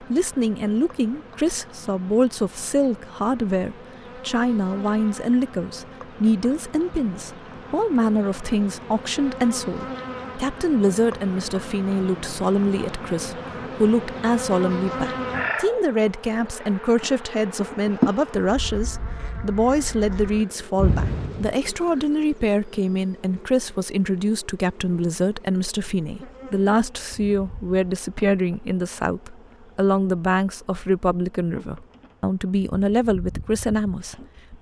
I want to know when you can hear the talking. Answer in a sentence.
You can hear the talking from 0.0 to 34.5 s.